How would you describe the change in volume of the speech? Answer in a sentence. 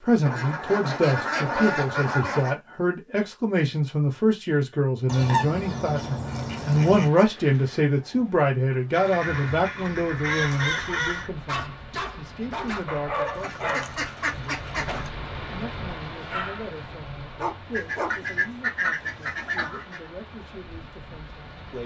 The volume of the speech goes down.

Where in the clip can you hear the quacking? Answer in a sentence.
The quacking can be heard from 0.2 to 2.6 s, from 5.0 to 7.1 s, from 8.9 to 11.3 s, from 13.2 to 15.1 s and from 17.7 to 20.0 s.